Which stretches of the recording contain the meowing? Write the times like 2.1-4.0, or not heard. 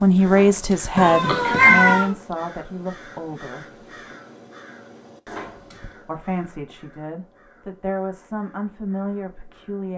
0.9-2.1.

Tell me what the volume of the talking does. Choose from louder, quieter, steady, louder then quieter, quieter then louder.
quieter.